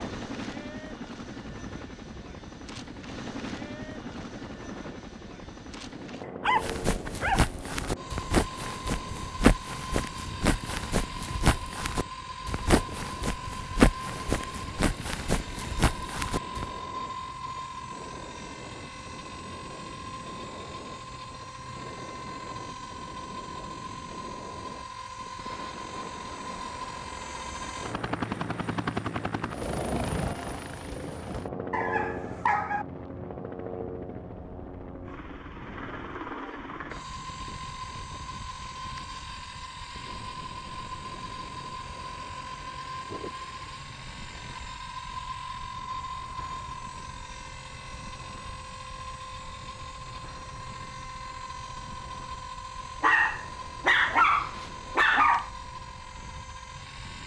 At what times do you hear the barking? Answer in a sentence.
The barking can be heard from 6.4 to 7.9 s, from 31.7 to 32.9 s and from 53.0 to 55.5 s.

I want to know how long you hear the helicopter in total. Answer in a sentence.
The helicopter can be heard for 57 seconds in total.